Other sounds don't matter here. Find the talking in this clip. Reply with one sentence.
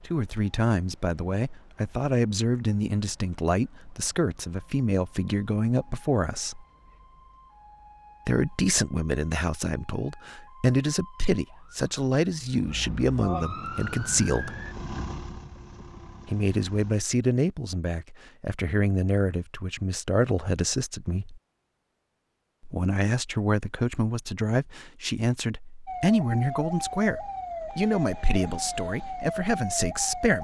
The talking can be heard from 0.1 to 6.7 s, from 8.2 to 14.6 s, from 16.2 to 21.4 s and from 22.6 to 30.4 s.